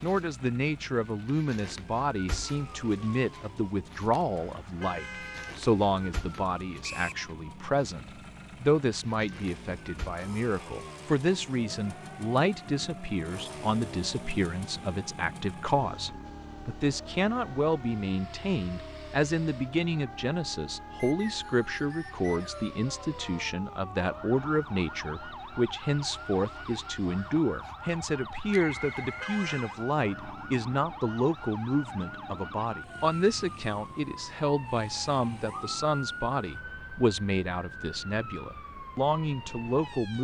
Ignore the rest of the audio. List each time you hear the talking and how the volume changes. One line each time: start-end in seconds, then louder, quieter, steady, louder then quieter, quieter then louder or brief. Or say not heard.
0.0-40.1 steady.